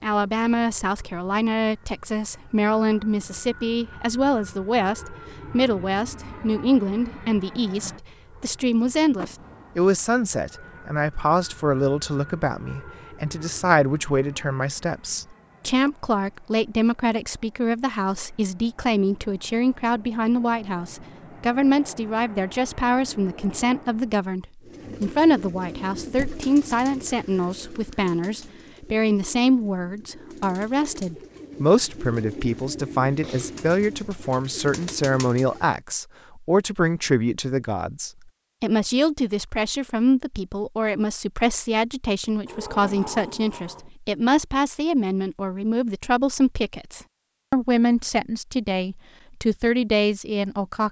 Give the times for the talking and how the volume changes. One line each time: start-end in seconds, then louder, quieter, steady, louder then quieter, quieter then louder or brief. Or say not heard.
0.0-50.8 steady.